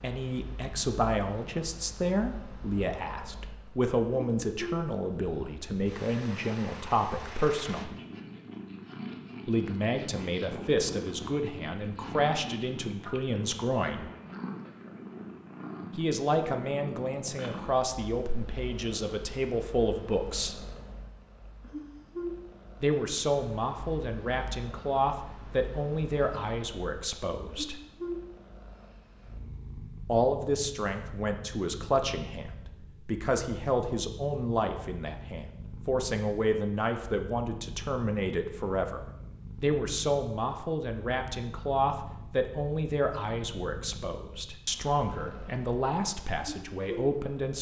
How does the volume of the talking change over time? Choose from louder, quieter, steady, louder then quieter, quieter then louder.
steady.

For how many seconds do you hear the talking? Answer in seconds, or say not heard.
40 s.